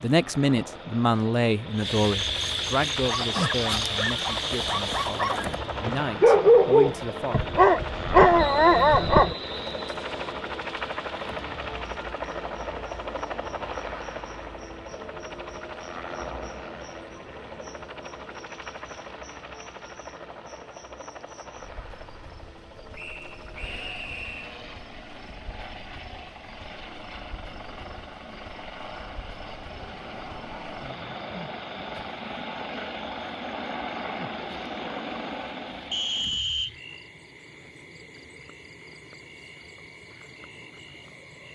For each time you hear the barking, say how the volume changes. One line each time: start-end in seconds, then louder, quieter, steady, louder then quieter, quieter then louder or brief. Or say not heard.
3.0-9.3 louder.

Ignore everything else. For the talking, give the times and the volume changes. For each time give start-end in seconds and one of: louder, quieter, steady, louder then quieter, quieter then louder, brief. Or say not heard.
0.0-7.5 quieter then louder.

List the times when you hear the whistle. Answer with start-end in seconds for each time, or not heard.
8.3-10.3, 22.9-24.6, 35.9-36.7.